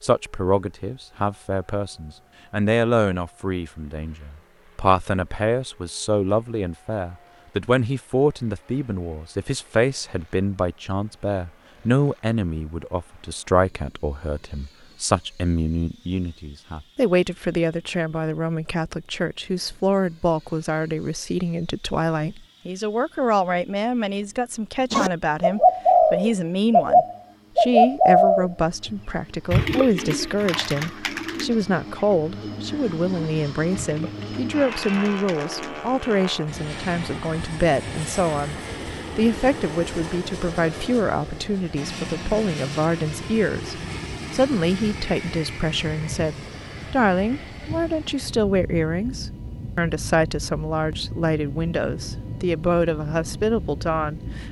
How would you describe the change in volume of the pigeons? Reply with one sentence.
The volume of the pigeons goes down.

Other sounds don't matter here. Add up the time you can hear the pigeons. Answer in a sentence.
You can hear the pigeons for 10 seconds altogether.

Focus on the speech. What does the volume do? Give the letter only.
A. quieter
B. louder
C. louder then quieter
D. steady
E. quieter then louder
D.